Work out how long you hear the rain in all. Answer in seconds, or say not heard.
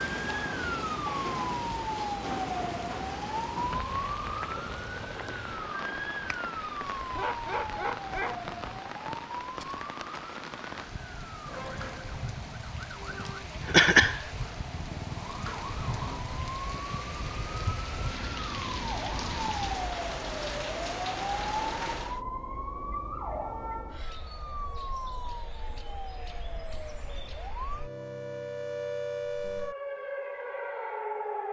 22 s.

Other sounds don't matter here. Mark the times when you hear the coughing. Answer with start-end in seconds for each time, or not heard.
13.2-14.2.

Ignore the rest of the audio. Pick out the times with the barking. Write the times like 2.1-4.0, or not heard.
7.1-8.8.